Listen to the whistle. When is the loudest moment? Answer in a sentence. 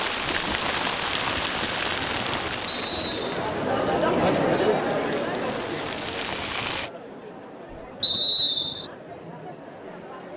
The loudest moment of the whistle is at 8 seconds.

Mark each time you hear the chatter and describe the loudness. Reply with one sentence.
The chatter can be heard from 0.0 to 10.3 s, getting louder then quieter.